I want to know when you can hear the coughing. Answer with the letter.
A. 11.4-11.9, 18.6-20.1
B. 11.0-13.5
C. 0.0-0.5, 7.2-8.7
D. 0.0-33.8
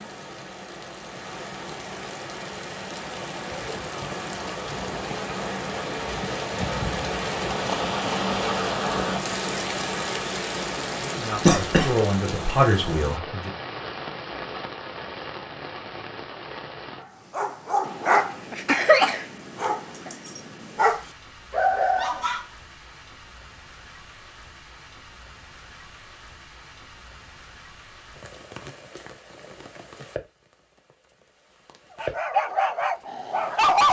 A.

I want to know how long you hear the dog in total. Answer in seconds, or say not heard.
7 s.